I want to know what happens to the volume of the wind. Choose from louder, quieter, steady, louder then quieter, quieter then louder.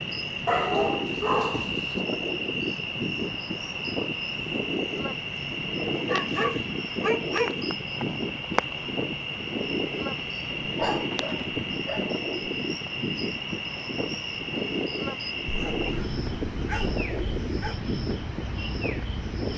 steady.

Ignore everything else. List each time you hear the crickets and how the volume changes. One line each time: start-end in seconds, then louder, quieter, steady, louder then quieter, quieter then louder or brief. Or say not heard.
0.0-19.5 steady.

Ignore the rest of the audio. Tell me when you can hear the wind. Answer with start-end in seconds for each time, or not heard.
0.1-19.5.